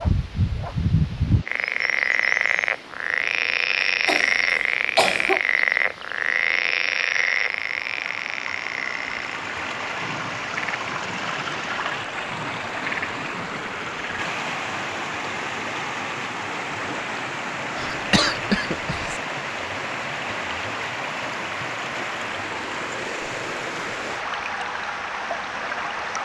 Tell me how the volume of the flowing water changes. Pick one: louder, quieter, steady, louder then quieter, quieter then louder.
louder.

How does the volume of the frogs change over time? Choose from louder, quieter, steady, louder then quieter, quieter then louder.
quieter.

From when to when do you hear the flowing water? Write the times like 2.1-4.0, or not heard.
0.0-26.2.